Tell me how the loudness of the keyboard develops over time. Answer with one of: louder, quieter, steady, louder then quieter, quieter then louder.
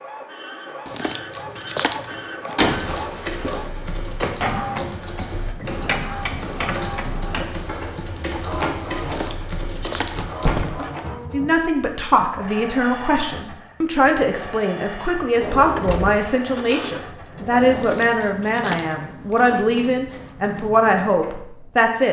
steady.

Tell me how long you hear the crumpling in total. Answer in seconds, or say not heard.
7 s.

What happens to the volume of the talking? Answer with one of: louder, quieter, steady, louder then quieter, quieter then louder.
steady.